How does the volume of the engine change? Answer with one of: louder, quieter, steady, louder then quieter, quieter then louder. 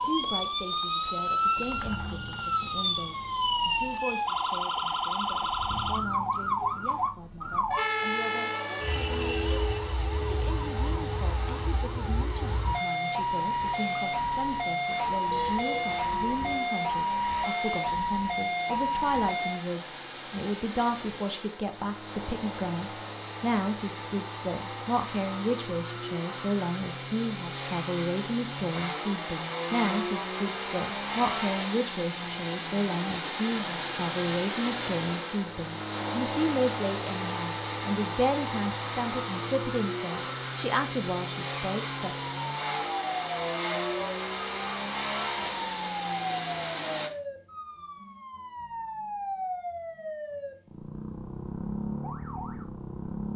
louder.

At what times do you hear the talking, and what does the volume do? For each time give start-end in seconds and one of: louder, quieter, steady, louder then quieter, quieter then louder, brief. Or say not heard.
0.0-42.1 louder.